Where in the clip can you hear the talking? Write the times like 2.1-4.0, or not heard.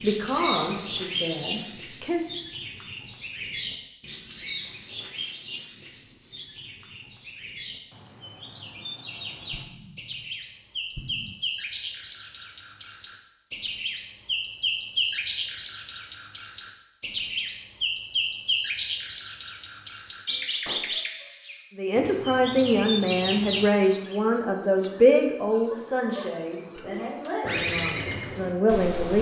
0.0-2.2, 21.8-29.1.